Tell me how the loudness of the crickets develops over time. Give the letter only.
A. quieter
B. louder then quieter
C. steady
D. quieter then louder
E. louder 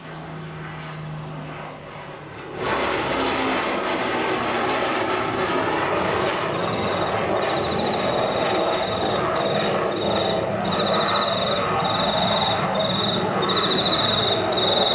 E.